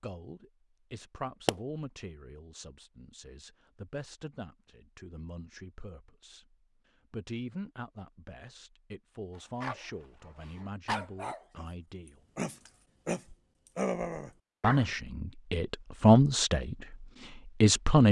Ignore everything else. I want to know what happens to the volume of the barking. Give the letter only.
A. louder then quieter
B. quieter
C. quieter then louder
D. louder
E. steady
D.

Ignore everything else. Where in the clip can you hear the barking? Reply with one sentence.
You can hear the barking from 9.3 to 14.8 s.